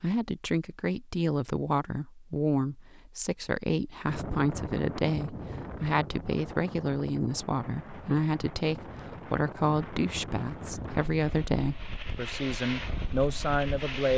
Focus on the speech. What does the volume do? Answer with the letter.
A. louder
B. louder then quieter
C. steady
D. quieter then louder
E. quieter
C.